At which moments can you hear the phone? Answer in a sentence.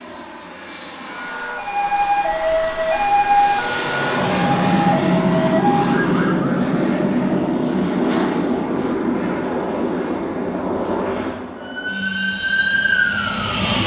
The phone can't be heard in this clip.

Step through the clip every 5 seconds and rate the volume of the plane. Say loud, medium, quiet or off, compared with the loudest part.
medium, loud, medium.